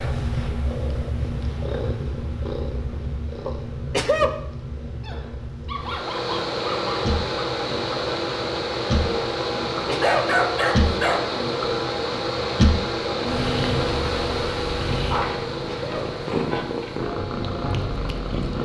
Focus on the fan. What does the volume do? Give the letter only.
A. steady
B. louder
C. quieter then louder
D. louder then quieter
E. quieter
E.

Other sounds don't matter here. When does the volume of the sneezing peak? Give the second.
4 s.